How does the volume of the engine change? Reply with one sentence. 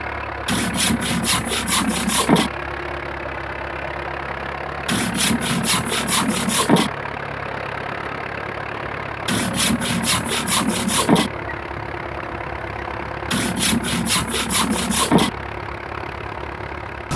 The volume of the engine stays about the same.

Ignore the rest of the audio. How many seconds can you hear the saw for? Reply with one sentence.
The saw can be heard for 8 seconds in total.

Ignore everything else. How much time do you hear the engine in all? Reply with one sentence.
The engine can be heard for 17 seconds in total.